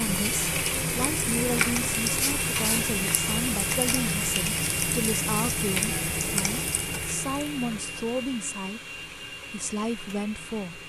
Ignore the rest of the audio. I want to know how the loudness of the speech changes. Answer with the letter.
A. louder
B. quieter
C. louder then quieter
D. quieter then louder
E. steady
E.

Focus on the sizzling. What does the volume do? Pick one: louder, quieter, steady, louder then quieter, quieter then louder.
quieter.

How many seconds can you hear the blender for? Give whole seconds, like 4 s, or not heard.
11 s.